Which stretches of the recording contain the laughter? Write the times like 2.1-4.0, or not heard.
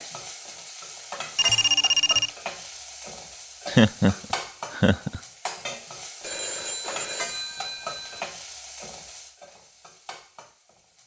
3.6-5.2.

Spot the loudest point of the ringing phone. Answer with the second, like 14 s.
2 s.